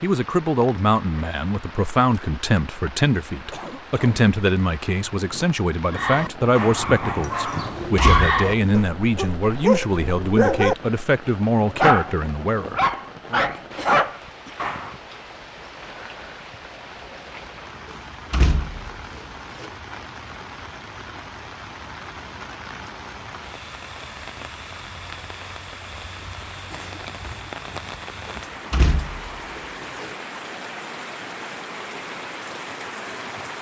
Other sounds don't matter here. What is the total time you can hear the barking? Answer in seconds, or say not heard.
8 s.